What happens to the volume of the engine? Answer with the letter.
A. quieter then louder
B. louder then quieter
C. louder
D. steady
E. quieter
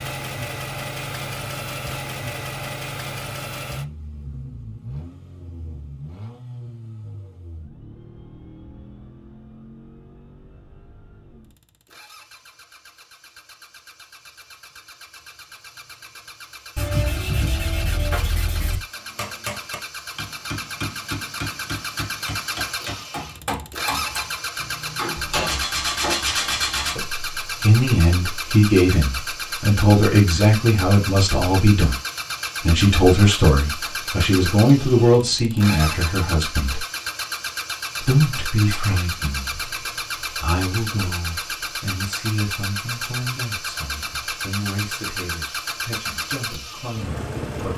A.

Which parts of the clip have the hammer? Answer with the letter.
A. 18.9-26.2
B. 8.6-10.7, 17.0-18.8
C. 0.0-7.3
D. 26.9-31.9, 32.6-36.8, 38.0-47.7
A.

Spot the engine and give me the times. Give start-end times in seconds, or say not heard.
0.0-47.7.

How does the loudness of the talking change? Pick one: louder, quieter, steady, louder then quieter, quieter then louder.
quieter.